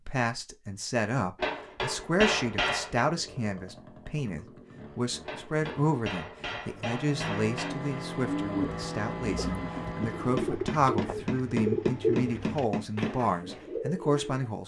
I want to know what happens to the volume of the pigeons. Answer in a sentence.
The volume of the pigeons goes up, then down.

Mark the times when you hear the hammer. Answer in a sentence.
You can hear the hammer from 1.4 to 3.0 s, from 5.2 to 7.8 s and from 10.3 to 13.2 s.